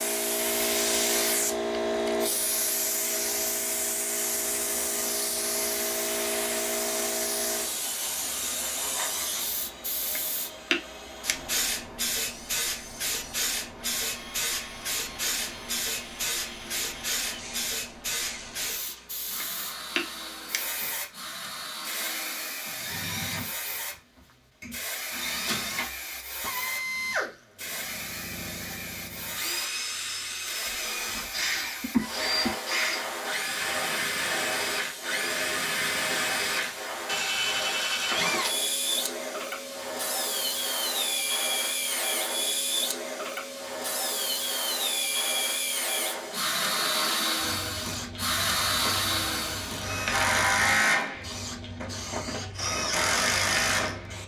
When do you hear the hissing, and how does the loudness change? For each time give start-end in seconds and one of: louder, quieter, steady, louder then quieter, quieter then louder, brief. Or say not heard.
0.0-54.2 quieter.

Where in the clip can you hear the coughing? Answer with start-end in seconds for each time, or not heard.
31.4-32.5.